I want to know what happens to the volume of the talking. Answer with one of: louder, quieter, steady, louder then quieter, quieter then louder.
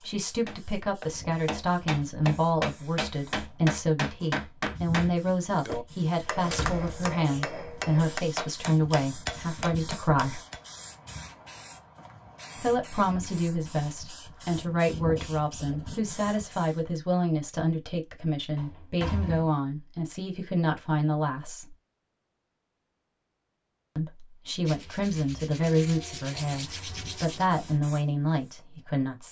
steady.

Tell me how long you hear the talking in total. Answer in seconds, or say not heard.
25 s.